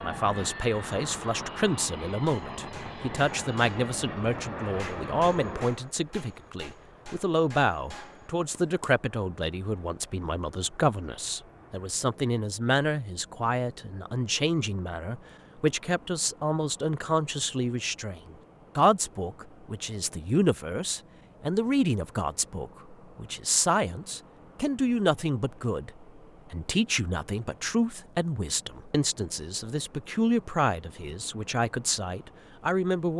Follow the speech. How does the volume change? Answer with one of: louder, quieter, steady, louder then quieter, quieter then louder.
steady.